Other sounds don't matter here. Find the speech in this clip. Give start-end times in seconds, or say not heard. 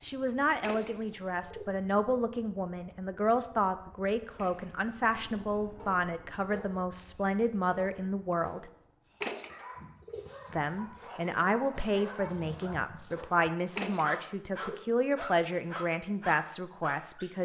0.0-8.7, 10.5-17.4.